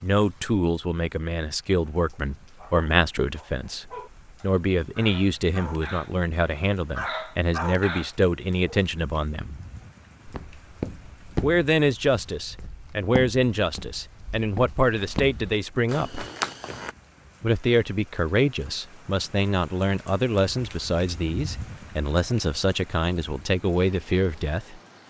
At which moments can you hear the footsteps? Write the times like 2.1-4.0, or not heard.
10.2-16.9.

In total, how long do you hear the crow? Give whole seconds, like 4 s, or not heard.
not heard.